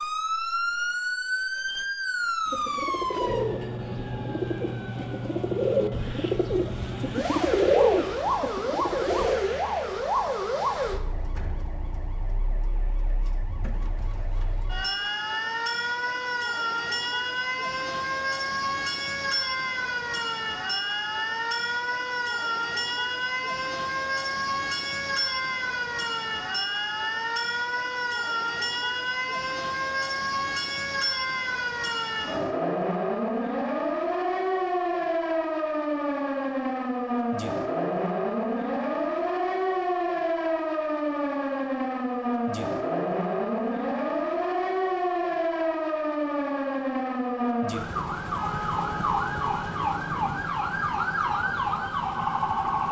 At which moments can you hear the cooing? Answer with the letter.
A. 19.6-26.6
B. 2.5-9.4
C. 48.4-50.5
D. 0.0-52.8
B.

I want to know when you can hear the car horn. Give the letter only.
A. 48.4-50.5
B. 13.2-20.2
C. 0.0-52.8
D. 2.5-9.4
A.